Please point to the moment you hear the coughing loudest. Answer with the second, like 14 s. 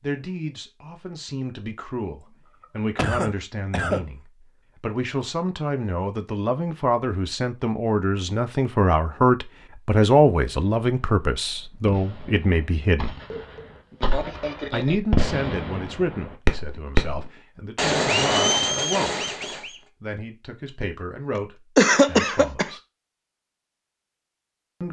22 s.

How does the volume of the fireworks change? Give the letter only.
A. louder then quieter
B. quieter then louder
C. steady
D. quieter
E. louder
E.